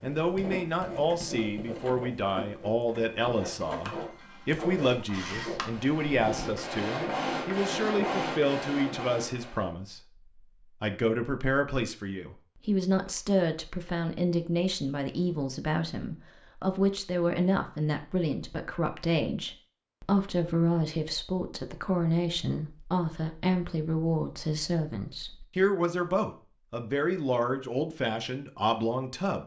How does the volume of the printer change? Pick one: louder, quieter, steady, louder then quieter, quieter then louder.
louder.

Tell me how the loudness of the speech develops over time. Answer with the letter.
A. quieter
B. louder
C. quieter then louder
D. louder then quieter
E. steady
E.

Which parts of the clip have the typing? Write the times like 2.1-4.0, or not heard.
not heard.